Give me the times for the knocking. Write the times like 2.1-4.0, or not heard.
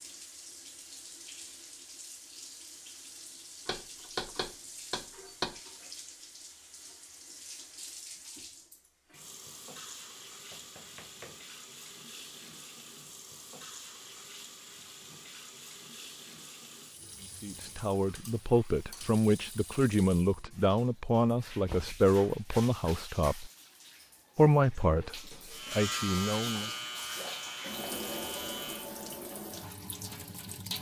3.6-5.6, 10.5-11.4, 21.6-22.1.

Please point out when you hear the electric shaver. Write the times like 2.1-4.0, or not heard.
25.5-28.9.